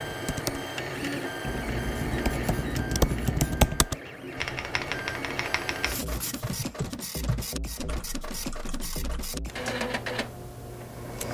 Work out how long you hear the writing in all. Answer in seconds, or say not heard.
3 s.